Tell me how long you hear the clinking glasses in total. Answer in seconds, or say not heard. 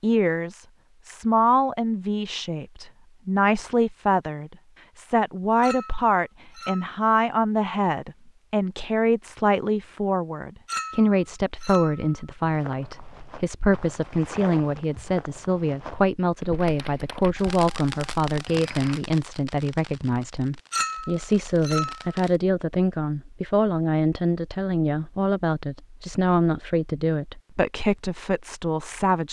4 s.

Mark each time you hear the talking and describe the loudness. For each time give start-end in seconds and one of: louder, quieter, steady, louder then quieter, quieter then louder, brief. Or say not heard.
0.0-29.2 steady.